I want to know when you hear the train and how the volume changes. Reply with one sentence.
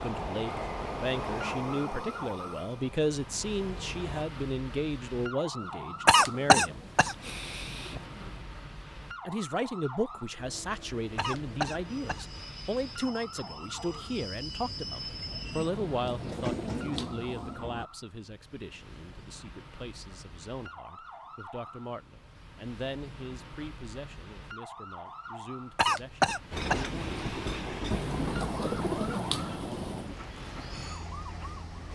You can hear the train from 0.0 to 4.2 s, getting quieter; from 10.3 to 17.9 s, getting louder; and from 26.5 to 31.9 s, getting quieter.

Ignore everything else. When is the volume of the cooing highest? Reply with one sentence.
The loudest moment of the cooing is at 29 seconds.